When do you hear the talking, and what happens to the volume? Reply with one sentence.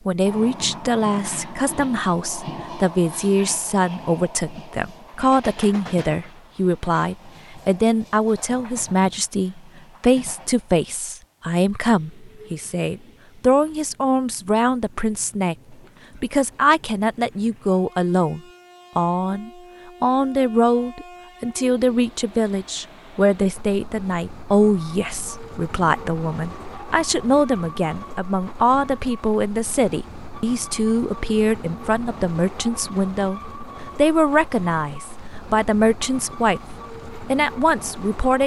The talking can be heard from 0.1 to 36.6 s, at a steady volume; and briefly from 37.3 to 38.4 s.